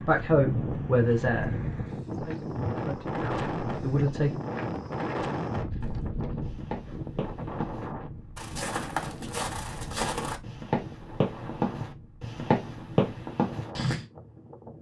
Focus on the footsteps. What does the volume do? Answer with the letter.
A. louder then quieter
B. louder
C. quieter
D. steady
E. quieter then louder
B.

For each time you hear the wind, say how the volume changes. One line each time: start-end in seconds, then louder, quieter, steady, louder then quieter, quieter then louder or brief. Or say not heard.
0.0-14.7 quieter.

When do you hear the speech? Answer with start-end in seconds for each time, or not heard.
0.0-4.4.